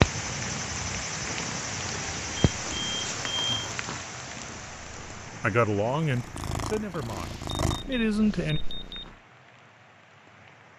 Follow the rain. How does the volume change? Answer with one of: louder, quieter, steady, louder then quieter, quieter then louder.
quieter.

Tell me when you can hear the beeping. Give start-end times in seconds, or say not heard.
2.5-3.8, 7.1-9.1.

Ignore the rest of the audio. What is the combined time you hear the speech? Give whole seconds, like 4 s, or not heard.
3 s.